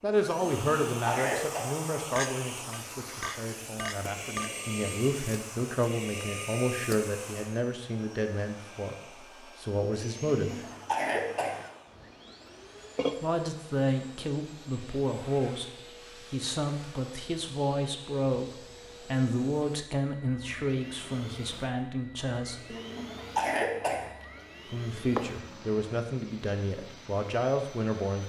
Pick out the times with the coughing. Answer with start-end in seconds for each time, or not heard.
0.6-1.6, 10.3-11.7, 22.7-24.1.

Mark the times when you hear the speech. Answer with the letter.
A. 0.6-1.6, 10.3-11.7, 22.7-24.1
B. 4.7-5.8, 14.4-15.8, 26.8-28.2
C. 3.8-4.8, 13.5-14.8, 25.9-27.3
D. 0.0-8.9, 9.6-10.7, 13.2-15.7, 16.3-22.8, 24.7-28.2
D.